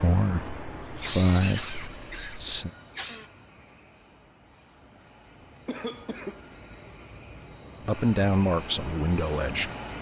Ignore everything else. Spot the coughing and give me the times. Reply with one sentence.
The coughing can be heard from 0.6 to 3.3 s and from 5.7 to 6.5 s.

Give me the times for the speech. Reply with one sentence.
You can hear the speech from 0.0 to 2.7 s and from 7.8 to 9.7 s.